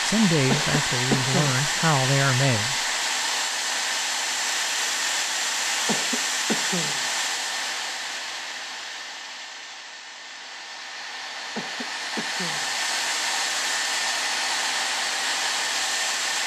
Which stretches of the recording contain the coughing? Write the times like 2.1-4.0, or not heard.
0.5-1.6, 5.8-7.0, 11.6-12.7.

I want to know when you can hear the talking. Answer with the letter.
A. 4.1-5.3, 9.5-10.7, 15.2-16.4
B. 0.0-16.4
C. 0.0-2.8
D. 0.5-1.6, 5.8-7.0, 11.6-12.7
C.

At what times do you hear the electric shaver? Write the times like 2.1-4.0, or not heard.
not heard.